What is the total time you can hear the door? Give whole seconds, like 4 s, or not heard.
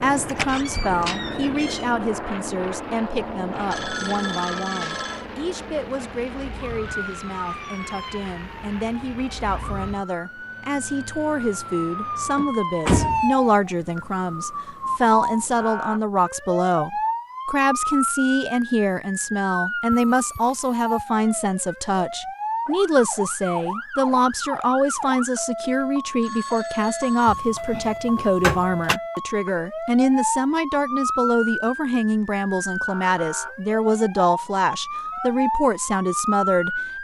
4 s.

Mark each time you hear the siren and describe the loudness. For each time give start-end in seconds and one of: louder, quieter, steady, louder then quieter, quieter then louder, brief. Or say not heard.
0.0-36.9 louder.